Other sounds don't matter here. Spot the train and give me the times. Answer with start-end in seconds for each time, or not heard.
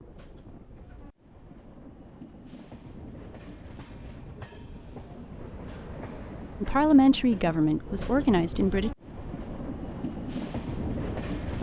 0.0-11.5.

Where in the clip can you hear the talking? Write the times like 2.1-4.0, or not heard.
6.6-8.9.